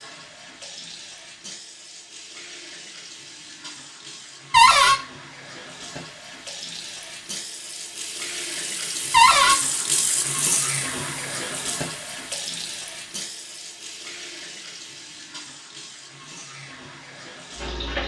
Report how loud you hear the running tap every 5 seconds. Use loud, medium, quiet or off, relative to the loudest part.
medium, loud, loud, medium.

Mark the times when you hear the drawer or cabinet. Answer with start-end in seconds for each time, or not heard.
4.5-5.0, 9.1-9.6.